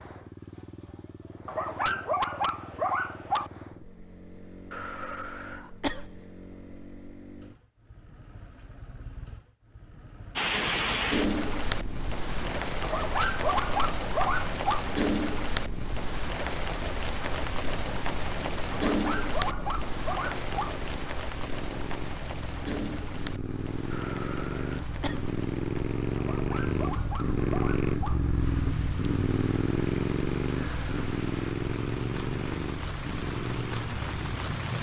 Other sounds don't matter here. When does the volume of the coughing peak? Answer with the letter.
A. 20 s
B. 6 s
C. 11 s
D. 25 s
B.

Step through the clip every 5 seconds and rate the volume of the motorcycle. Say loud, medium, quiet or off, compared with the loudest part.
quiet, quiet, quiet, quiet, medium, loud, loud.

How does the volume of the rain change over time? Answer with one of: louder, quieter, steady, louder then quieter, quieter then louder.
quieter then louder.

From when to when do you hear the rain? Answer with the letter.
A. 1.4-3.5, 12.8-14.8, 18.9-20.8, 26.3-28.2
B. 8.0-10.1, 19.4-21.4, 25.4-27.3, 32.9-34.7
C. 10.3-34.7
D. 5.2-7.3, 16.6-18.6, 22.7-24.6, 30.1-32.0
C.